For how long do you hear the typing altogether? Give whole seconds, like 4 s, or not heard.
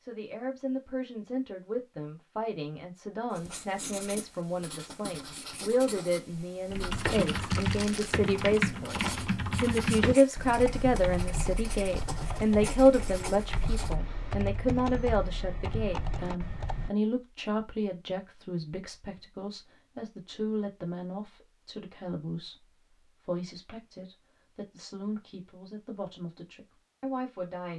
10 s.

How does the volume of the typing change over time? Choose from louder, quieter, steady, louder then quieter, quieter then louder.
quieter.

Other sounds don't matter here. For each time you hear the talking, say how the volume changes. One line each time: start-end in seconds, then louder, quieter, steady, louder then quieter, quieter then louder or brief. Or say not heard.
0.0-27.7 louder then quieter.